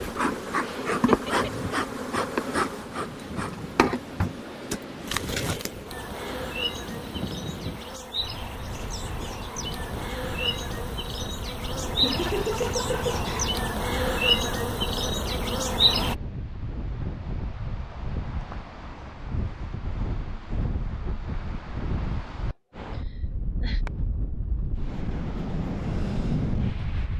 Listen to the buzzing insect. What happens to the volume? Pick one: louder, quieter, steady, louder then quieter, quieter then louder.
quieter then louder.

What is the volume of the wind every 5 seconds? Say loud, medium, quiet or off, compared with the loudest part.
medium, medium, medium, medium, medium, loud.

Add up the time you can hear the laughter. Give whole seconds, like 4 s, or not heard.
4 s.